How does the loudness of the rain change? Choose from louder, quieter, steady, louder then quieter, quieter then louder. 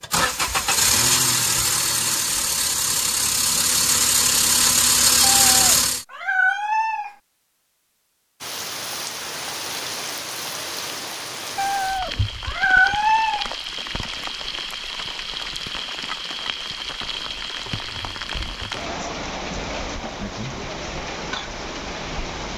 steady.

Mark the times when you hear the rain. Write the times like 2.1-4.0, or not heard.
8.4-22.5.